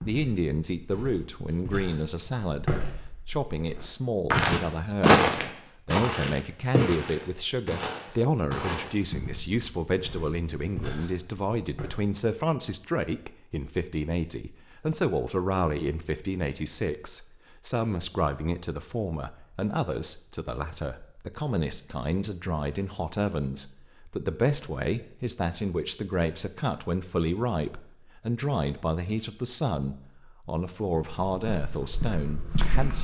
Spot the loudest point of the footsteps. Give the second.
5 s.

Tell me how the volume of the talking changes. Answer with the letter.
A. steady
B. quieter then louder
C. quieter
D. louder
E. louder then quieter
A.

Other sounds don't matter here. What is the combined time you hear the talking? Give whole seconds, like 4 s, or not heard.
33 s.